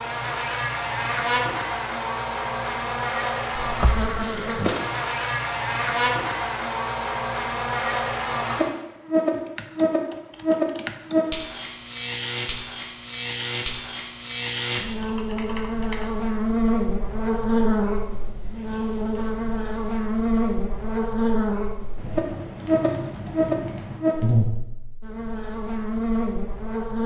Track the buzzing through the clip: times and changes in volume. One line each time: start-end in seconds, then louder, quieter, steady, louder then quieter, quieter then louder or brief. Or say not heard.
0.0-27.0 steady.